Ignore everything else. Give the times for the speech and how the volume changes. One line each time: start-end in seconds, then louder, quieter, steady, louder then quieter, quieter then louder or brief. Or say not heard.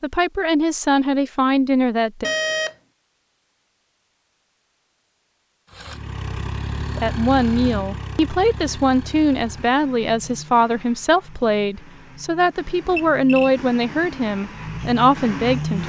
0.0-2.2 brief
7.0-15.8 steady.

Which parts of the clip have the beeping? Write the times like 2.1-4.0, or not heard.
2.2-2.8, 12.8-13.5.